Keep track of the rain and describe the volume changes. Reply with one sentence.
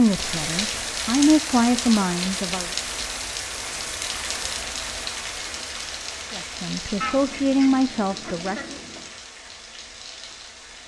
The volume of the rain goes down.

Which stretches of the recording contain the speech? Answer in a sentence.
You can hear the speech from 0.0 to 2.7 s and from 6.3 to 8.8 s.